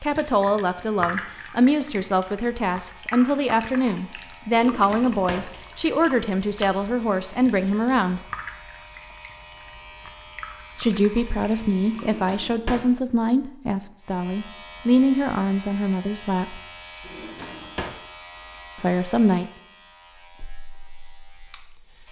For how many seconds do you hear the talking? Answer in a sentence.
You can hear the talking for 15 seconds altogether.